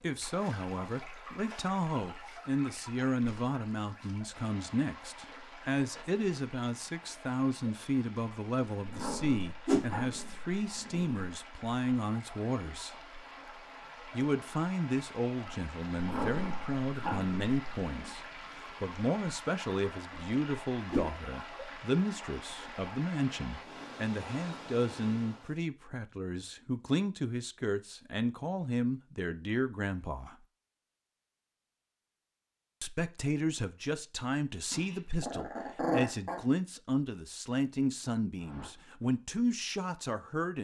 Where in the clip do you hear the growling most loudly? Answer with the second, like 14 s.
36 s.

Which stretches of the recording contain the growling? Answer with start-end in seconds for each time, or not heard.
8.8-11.2, 15.9-18.1, 34.7-36.4.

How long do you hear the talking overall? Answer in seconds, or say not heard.
37 s.